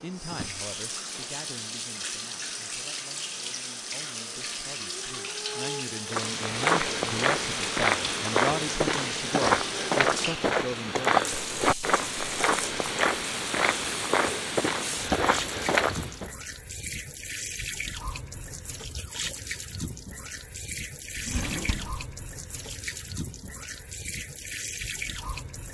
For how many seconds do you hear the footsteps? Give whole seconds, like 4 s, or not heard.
10 s.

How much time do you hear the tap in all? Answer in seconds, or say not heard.
26 s.